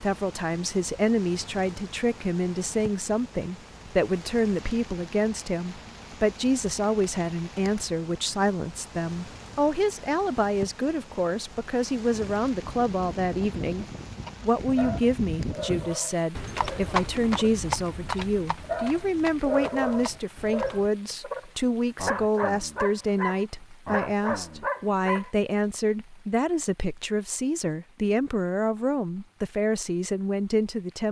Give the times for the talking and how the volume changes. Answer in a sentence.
You can hear the talking from 0.0 to 31.0 s, at a steady volume.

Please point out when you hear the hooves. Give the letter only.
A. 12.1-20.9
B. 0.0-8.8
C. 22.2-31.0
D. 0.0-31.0
A.